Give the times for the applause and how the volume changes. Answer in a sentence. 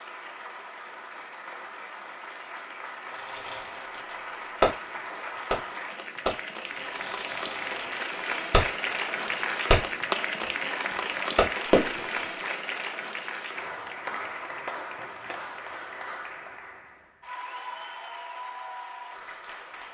The applause can be heard from 0.0 to 19.8 s, getting louder then quieter.